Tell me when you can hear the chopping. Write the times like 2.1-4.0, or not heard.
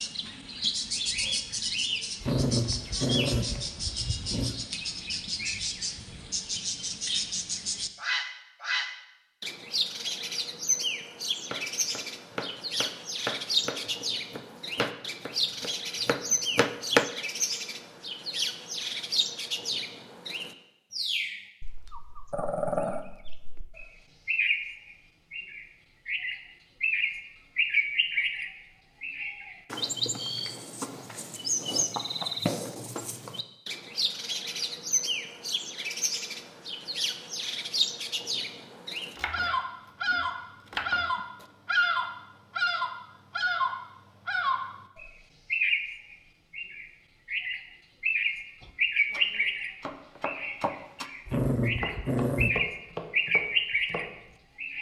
11.4-17.1, 39.1-41.5, 48.6-54.4.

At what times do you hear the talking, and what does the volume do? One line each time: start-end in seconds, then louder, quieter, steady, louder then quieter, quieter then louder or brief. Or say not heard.
not heard.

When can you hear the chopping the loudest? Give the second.
17 s.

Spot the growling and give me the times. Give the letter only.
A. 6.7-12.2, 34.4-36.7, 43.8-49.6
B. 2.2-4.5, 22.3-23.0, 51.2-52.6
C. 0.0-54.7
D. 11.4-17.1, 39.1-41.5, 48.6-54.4
B.